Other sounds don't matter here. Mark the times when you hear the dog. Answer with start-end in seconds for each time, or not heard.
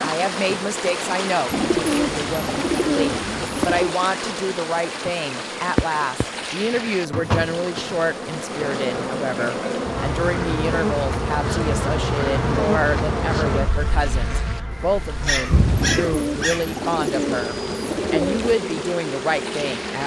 15.2-16.8.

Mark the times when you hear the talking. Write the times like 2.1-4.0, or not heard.
0.0-20.0.